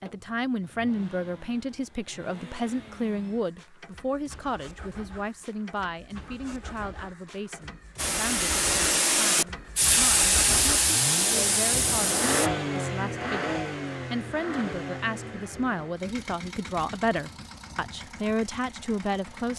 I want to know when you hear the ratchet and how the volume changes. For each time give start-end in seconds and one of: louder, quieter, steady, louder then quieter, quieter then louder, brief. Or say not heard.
not heard.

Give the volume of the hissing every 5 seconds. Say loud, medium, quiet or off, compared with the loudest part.
off, loud, loud, off.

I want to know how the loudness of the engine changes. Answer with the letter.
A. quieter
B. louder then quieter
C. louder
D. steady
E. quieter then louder
B.